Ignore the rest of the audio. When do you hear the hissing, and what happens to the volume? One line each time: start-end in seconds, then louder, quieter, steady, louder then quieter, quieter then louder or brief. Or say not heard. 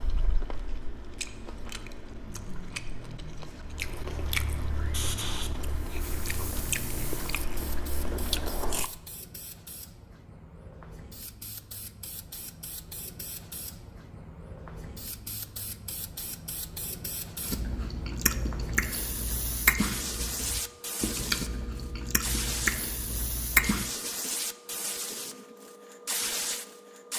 4.8-27.1 louder.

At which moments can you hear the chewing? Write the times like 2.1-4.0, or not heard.
0.0-8.9, 17.4-23.9.